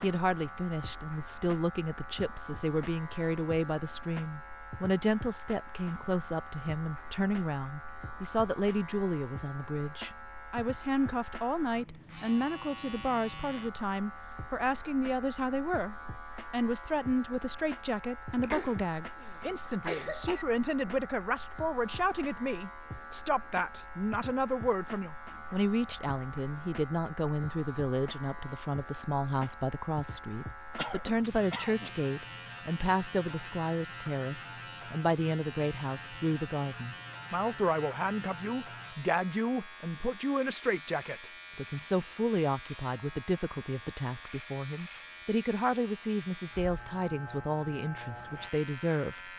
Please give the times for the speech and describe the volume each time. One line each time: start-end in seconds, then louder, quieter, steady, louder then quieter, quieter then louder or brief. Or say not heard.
0.0-49.3 steady.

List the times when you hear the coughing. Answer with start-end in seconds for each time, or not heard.
18.4-20.4, 30.8-31.9.